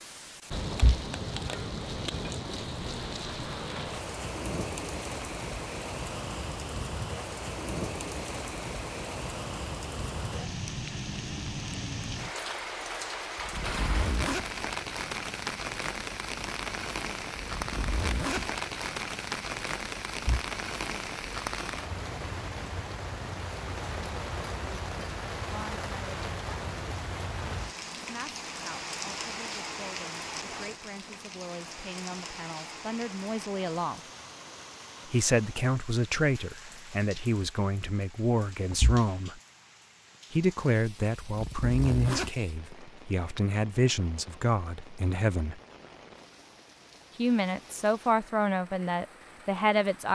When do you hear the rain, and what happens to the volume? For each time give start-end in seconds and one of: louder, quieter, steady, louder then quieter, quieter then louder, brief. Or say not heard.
0.0-50.1 quieter.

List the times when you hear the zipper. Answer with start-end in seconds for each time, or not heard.
13.3-14.4, 17.4-18.5, 41.2-42.8.